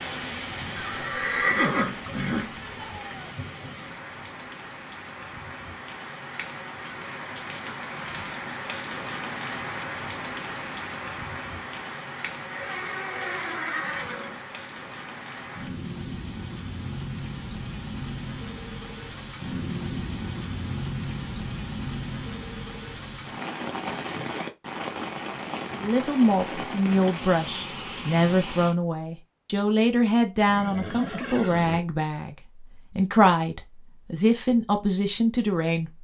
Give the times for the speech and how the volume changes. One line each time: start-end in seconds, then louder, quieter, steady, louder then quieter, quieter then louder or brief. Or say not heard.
25.8-35.9 steady.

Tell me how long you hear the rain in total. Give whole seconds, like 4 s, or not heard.
29 s.